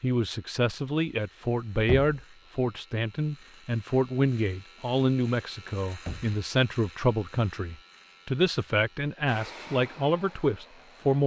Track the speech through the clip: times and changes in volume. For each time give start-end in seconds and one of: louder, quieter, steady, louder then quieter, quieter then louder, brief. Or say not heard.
0.0-11.2 steady.